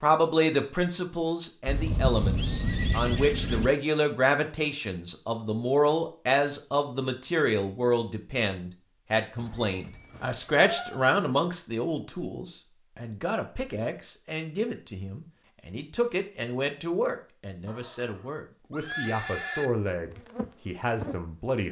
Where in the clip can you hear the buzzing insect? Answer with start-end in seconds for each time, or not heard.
20.1-21.2.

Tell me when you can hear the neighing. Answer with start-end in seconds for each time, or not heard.
1.6-3.7, 9.3-11.1, 17.6-19.7.